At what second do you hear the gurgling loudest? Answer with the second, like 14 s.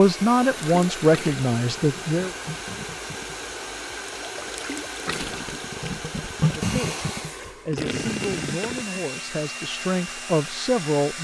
7 s.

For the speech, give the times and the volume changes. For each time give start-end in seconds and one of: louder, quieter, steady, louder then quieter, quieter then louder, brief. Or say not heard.
0.0-2.4 brief
6.4-11.1 louder.